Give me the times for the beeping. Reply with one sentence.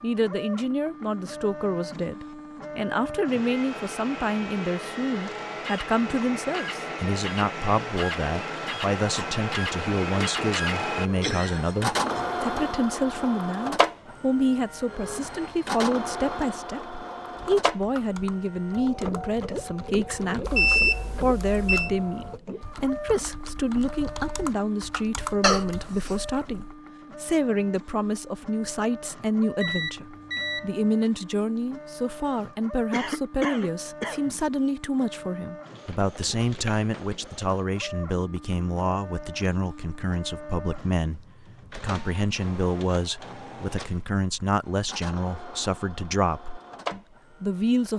The beeping can be heard from 20.4 to 21.9 s and from 29.6 to 30.7 s.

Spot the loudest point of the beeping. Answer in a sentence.
The loudest moment of the beeping is at 21 seconds.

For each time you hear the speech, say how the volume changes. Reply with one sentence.
The speech can be heard from 0.0 to 47.9 s, at a steady volume.